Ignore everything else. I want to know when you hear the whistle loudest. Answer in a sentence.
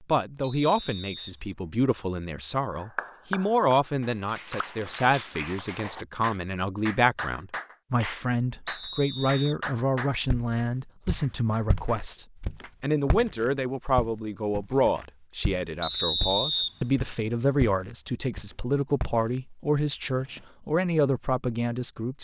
The loudest moment of the whistle is at 16 seconds.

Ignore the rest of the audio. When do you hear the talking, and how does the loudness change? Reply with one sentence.
The talking can be heard from 0.1 to 22.1 s, at a steady volume.